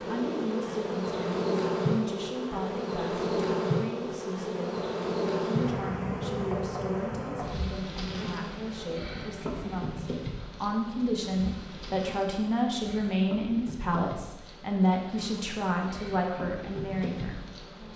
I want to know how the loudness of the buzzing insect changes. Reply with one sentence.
The loudness of the buzzing insect goes down.